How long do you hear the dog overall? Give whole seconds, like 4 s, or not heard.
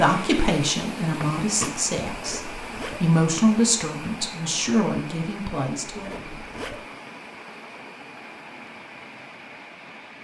not heard.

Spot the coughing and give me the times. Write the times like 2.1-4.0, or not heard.
1.2-1.9.